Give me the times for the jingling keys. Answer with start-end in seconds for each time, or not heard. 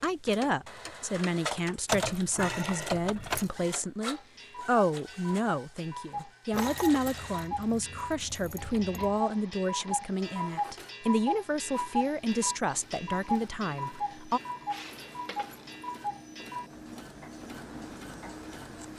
1.9-3.5, 6.5-9.2, 14.7-15.9.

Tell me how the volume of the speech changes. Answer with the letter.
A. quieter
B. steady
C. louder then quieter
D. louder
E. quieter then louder
B.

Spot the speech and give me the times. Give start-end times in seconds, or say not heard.
0.0-14.4.